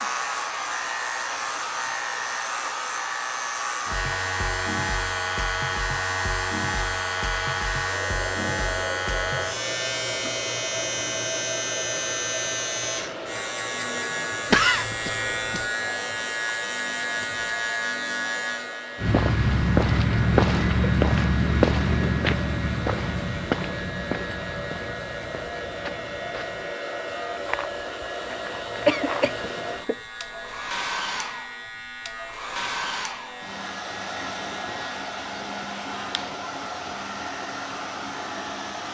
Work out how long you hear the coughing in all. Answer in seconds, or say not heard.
2 s.